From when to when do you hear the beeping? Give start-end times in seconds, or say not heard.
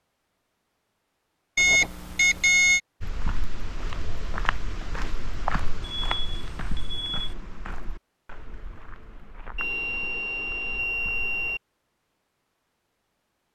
1.6-2.8, 5.8-7.3, 9.6-11.6.